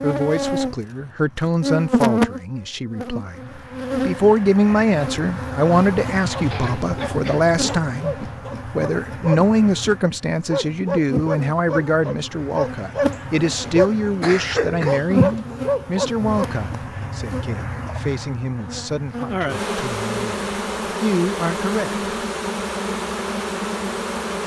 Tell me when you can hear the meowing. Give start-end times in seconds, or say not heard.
not heard.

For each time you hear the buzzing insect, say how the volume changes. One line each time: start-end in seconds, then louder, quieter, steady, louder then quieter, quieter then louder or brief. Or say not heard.
0.0-24.4 quieter then louder.